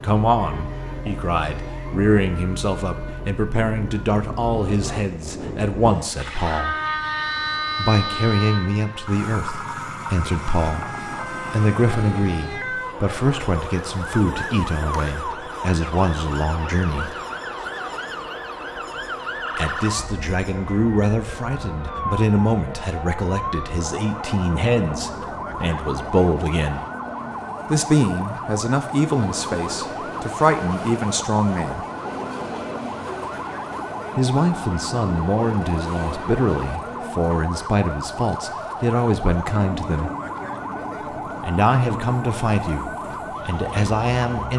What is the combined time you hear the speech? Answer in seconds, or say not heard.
37 s.